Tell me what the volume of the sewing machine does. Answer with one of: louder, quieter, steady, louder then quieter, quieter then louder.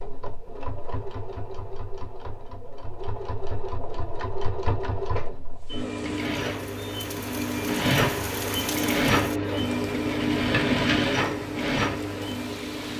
louder.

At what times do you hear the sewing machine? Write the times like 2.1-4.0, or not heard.
0.0-12.9.